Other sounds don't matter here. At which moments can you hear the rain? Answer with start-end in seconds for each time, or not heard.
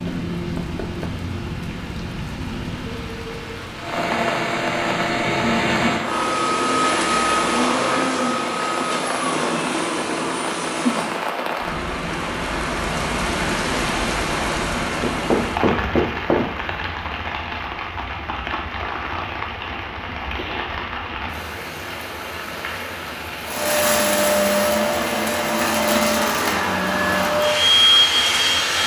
0.0-28.8.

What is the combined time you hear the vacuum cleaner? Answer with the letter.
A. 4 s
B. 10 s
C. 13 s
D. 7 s
C.